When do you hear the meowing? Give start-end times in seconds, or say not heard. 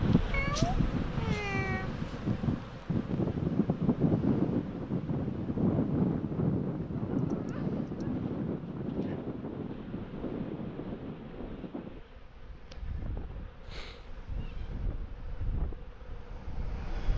0.3-1.9, 7.0-8.2, 13.6-14.8.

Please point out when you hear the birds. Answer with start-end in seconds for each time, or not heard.
not heard.